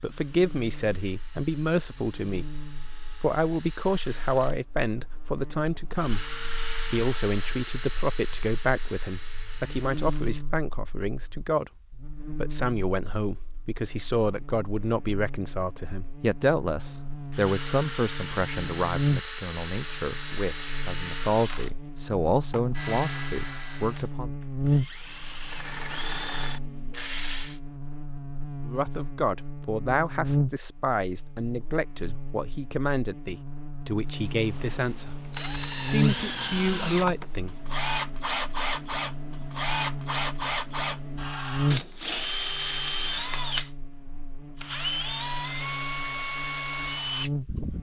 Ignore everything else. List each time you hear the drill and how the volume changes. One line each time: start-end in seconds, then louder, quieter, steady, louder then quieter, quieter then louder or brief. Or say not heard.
0.1-10.3 louder then quieter
16.9-27.6 quieter then louder
34.1-47.7 steady.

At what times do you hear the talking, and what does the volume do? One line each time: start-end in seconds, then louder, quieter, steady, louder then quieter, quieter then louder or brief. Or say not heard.
0.0-6.2 steady
6.9-24.3 steady
28.6-37.5 steady.